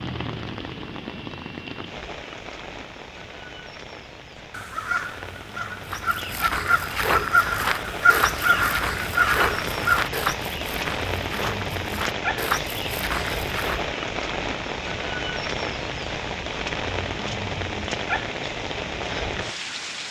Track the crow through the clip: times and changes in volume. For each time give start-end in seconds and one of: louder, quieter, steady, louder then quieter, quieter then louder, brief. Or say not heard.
4.3-10.1 louder.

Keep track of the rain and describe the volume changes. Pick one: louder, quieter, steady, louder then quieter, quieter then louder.
louder.